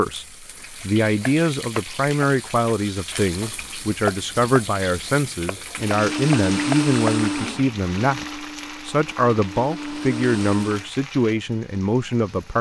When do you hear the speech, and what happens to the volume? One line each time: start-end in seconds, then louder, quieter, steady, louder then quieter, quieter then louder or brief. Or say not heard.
0.0-12.5 steady.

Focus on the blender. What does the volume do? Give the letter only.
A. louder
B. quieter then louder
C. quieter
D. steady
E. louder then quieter
B.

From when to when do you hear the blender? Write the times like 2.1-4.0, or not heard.
5.9-10.9.